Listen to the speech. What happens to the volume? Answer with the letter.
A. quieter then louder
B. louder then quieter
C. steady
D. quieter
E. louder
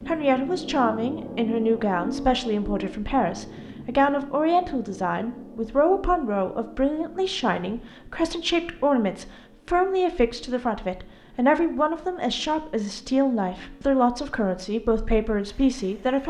C.